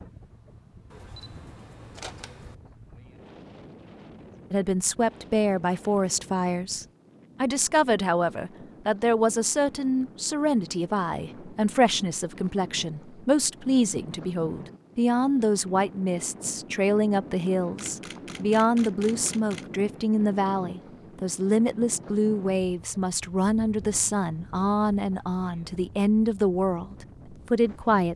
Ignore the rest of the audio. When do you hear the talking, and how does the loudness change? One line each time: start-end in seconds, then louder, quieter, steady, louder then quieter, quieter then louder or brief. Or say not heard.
4.5-28.1 steady.